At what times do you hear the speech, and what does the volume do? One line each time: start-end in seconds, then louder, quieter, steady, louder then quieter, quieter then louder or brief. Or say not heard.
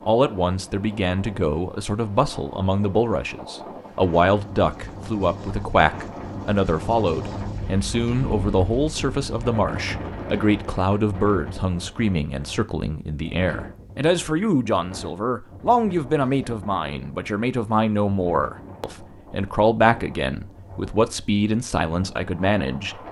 0.0-23.0 steady.